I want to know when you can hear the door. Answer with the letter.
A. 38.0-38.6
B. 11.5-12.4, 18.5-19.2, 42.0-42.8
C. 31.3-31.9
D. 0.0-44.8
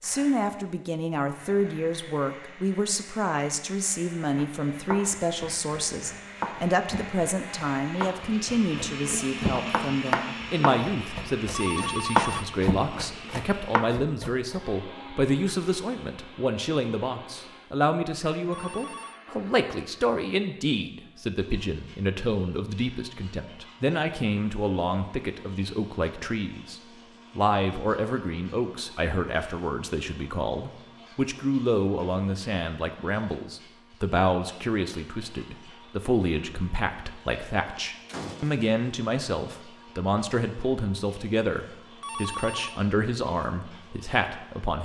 A.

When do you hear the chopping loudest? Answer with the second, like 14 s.
12 s.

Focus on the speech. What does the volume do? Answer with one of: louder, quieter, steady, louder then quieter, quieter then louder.
steady.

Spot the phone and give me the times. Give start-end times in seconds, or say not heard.
11.5-12.4, 18.5-19.2, 42.0-42.8.